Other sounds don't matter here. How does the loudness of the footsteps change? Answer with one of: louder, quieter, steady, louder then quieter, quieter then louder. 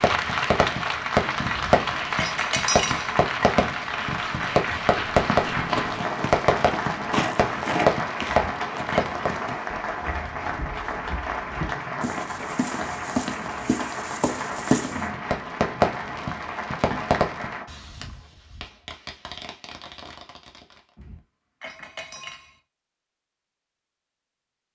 quieter then louder.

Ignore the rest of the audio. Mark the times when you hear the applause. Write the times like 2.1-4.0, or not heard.
0.0-17.7.